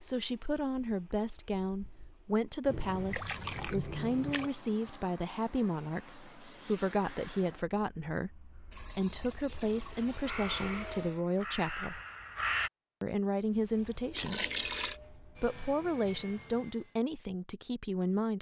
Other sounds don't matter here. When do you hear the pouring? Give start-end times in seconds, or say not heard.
2.6-4.5, 8.7-10.4, 14.2-14.9.